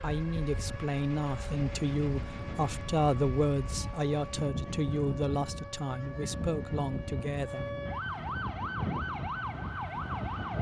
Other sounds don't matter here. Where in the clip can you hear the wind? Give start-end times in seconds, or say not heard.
0.0-10.5.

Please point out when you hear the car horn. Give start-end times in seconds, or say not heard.
not heard.